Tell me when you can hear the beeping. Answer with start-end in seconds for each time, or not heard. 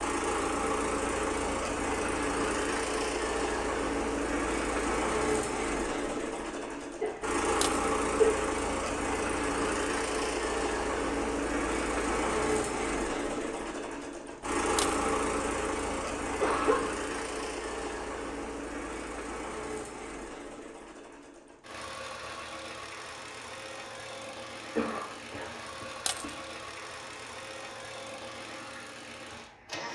not heard.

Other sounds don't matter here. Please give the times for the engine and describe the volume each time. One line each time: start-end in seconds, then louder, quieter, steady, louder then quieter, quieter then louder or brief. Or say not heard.
0.0-29.9 quieter.